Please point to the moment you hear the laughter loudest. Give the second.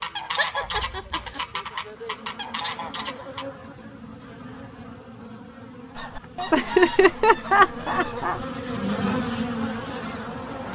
7 s.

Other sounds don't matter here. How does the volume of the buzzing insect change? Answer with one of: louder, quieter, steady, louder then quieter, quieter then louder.
louder.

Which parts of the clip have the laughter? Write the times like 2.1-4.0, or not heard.
0.3-1.4, 6.5-8.4.